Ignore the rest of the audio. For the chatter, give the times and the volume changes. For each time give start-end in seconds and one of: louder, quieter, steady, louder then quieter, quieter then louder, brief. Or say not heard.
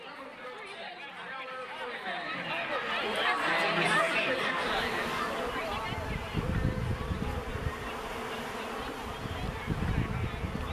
0.0-10.6 louder then quieter.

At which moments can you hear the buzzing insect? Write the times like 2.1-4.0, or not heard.
4.5-10.6.